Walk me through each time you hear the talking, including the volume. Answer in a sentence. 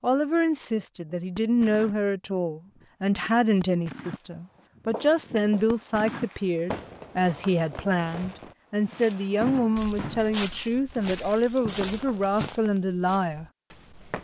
You can hear the talking from 0.0 to 13.4 s, at a steady volume.